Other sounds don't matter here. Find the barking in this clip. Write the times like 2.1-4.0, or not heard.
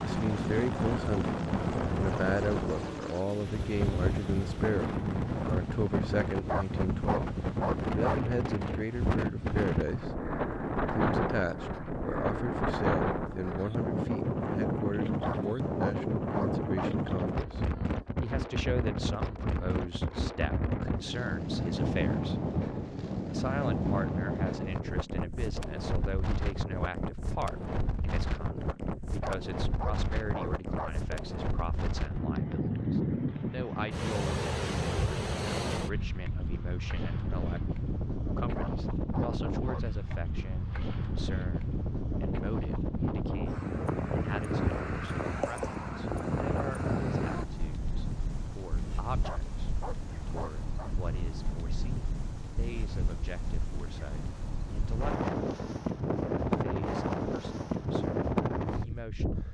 6.5-8.2, 15.2-17.0, 29.2-31.0, 38.5-40.2, 49.2-51.0.